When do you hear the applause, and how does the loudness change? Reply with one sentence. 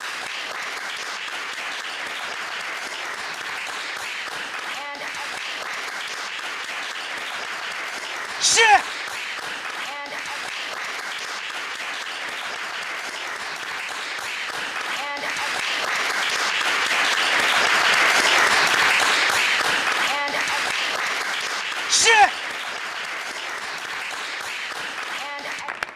You can hear the applause from 0.0 to 25.9 s, getting louder then quieter.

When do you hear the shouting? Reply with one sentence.
The shouting can be heard from 8.4 to 8.8 s and from 21.9 to 22.3 s.